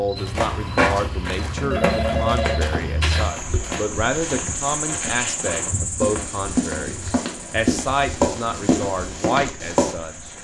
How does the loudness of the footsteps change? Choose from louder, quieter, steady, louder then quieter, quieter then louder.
quieter then louder.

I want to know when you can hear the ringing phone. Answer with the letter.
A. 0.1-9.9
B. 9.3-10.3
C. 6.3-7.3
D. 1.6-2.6
D.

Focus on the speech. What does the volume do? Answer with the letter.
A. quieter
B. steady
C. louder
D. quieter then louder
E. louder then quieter
B.